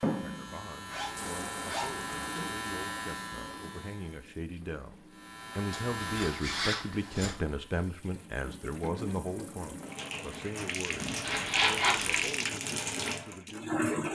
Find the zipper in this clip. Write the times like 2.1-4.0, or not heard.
0.8-2.0, 5.7-7.3, 11.2-12.3.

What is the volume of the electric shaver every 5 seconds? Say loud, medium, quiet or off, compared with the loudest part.
loud, loud, off.